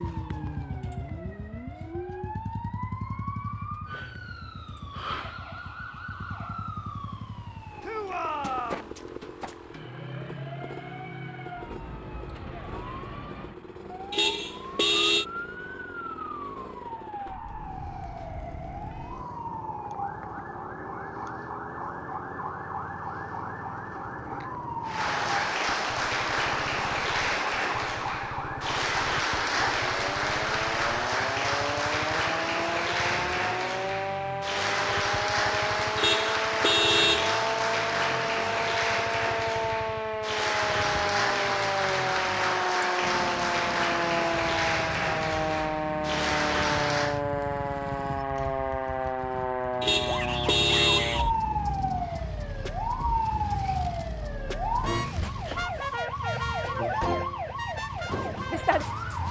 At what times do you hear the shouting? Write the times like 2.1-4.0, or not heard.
7.8-8.9, 50.0-51.3.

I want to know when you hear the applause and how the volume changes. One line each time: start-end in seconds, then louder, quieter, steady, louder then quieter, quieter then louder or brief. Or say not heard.
24.9-47.2 steady.